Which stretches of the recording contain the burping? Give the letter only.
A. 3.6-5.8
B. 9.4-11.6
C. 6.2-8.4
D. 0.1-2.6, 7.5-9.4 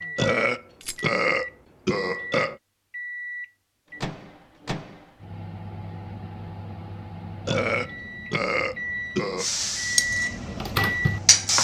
D.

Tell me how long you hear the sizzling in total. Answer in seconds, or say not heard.
2 s.